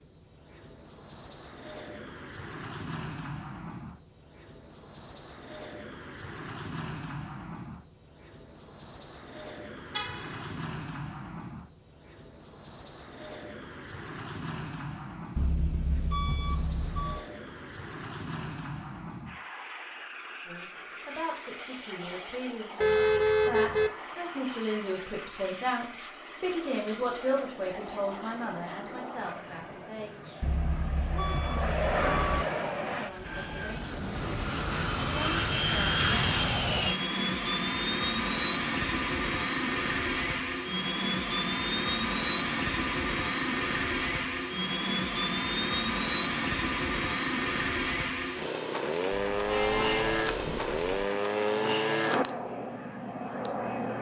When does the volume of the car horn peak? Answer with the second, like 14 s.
23 s.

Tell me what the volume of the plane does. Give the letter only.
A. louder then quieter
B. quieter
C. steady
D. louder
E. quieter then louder
D.